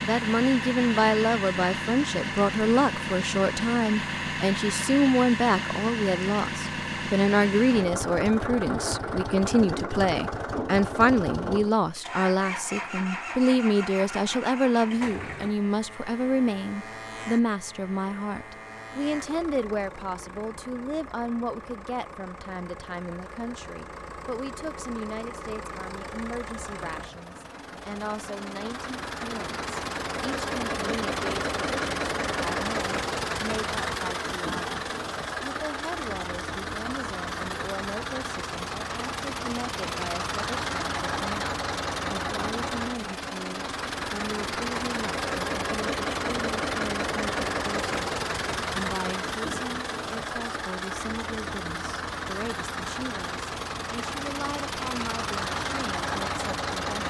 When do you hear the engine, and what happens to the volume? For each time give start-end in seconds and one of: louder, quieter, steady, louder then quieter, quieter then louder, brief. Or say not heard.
0.0-57.0 quieter then louder.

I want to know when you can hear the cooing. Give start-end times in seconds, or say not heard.
not heard.